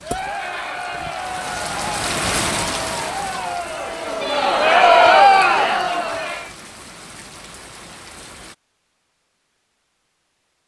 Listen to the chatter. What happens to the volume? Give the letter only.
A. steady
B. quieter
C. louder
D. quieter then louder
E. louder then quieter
C.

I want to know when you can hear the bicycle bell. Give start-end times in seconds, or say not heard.
not heard.